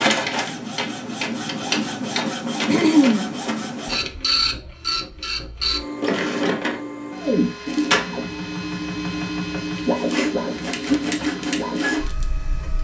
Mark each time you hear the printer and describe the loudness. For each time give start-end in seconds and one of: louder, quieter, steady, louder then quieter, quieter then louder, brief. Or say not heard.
0.0-12.7 steady.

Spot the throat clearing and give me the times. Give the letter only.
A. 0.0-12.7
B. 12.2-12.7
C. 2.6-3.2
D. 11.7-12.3
C.